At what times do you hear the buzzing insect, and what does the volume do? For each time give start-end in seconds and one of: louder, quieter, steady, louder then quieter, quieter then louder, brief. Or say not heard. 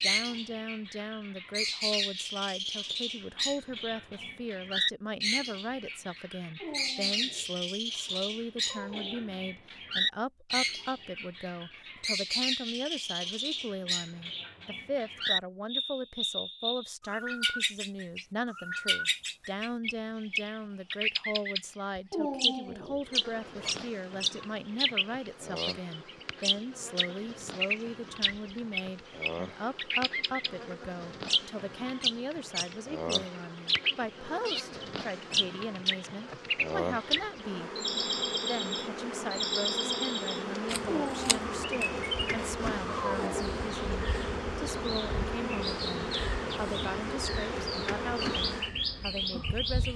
23.0-49.9 louder.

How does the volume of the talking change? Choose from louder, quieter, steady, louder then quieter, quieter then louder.
steady.